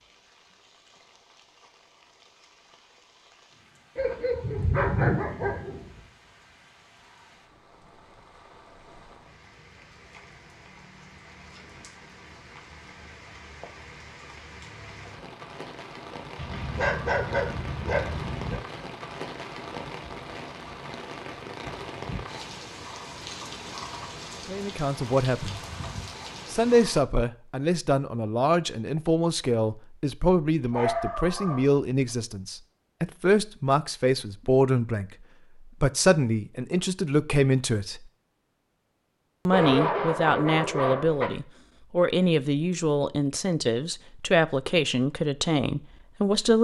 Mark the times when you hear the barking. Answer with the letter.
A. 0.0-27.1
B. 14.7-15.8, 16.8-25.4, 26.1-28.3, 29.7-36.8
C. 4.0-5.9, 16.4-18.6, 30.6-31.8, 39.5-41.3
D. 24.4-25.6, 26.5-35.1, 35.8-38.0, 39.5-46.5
C.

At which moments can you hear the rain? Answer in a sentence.
The rain can be heard from 0.0 to 27.1 s.